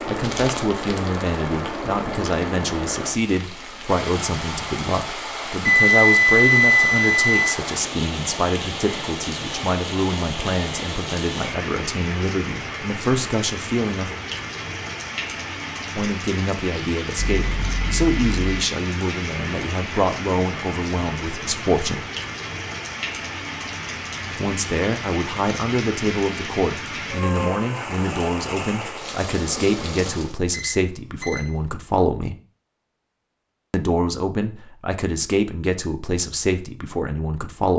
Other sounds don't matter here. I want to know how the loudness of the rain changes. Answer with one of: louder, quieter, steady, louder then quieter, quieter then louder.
steady.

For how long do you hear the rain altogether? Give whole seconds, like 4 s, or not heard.
30 s.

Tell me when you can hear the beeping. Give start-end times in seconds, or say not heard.
5.7-7.5, 17.1-18.6, 30.5-31.5.